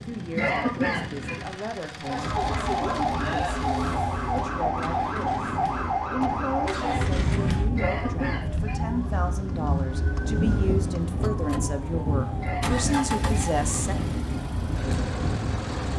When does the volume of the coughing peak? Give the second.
1 s.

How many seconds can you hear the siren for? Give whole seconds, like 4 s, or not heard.
14 s.